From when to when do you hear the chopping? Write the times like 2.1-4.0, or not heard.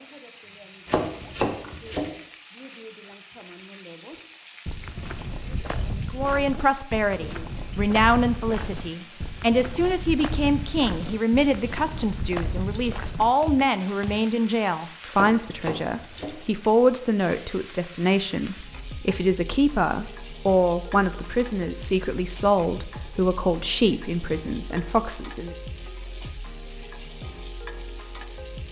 0.8-2.1, 15.1-16.4.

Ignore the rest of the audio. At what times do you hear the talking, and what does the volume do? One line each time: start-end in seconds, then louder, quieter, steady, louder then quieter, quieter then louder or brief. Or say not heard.
6.1-25.6 steady.